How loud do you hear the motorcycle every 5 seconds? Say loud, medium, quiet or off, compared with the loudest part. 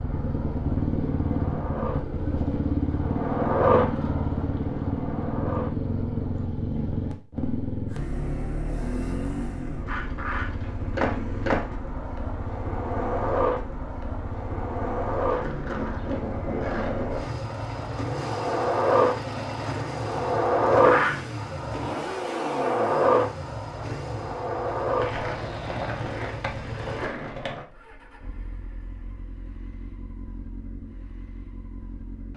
loud, loud, medium, medium, medium, quiet, quiet.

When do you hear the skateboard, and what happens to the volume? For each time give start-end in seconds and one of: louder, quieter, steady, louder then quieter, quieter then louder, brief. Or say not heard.
0.0-6.5 louder then quieter
9.8-27.6 louder then quieter.